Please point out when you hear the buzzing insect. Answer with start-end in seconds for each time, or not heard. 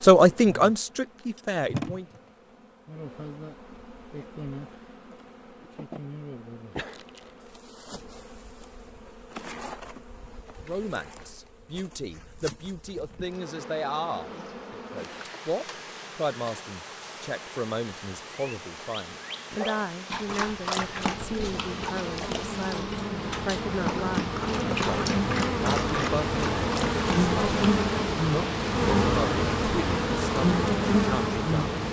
0.0-31.8.